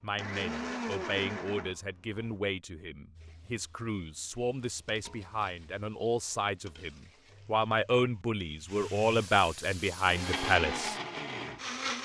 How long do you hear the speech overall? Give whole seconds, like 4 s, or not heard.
11 s.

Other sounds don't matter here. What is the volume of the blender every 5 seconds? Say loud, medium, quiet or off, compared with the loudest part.
loud, off, loud.